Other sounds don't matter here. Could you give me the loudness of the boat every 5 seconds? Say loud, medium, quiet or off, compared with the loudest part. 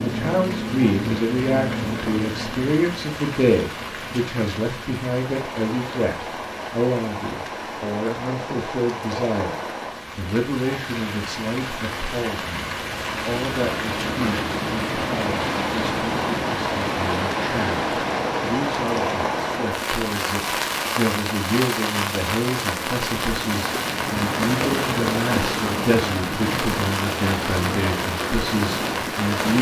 loud, off, loud, loud, loud, loud.